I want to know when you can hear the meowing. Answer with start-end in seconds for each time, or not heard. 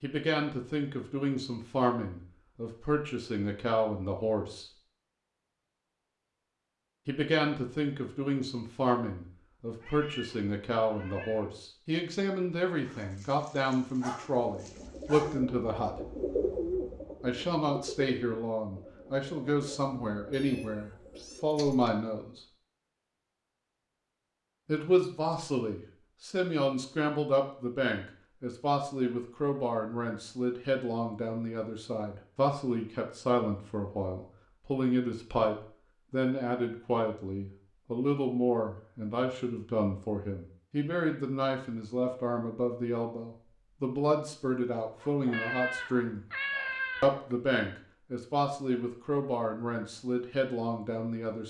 9.8-11.4, 20.3-21.9, 45.3-47.4.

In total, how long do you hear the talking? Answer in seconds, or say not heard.
45 s.